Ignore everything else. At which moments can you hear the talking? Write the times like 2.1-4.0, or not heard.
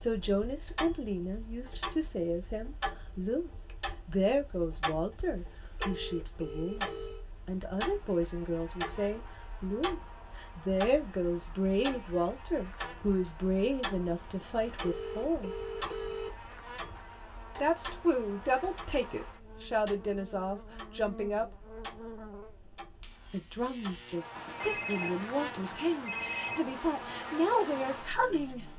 0.0-15.6, 17.6-21.6, 23.3-28.7.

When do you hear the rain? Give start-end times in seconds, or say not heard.
not heard.